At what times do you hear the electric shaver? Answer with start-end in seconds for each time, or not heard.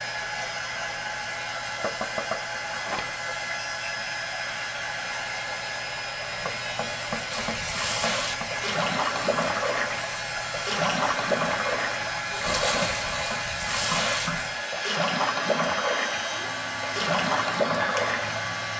0.0-18.7.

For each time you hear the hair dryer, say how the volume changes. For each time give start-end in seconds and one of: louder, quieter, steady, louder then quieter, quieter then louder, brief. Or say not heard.
0.0-18.7 steady.